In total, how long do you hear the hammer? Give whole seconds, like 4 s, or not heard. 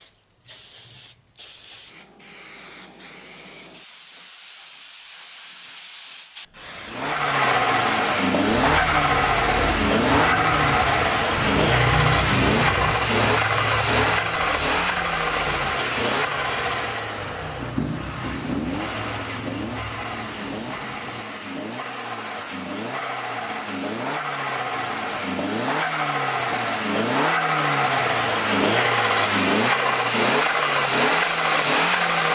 not heard.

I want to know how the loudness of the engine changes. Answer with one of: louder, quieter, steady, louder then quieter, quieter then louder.
quieter then louder.